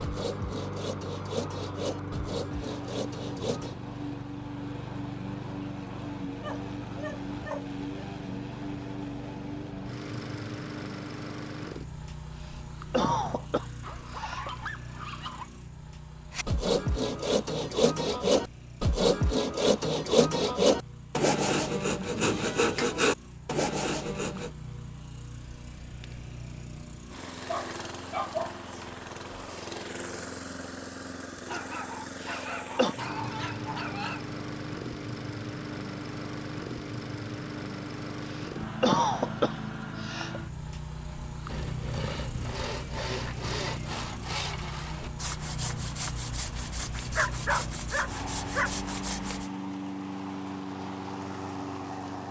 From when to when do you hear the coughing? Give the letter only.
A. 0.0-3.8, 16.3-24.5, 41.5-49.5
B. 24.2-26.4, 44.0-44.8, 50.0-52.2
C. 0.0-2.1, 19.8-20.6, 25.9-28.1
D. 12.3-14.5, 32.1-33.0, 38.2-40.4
D.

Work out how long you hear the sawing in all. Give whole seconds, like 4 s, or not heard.
20 s.